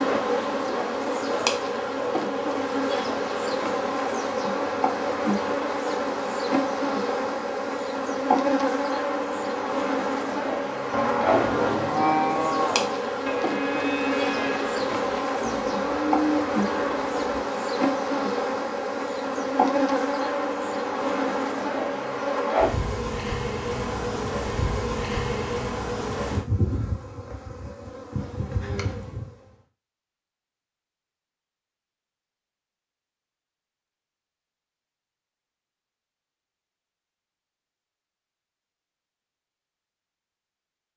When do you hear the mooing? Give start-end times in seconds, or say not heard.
10.9-17.4.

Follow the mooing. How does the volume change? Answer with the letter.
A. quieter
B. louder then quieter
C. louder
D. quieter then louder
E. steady
D.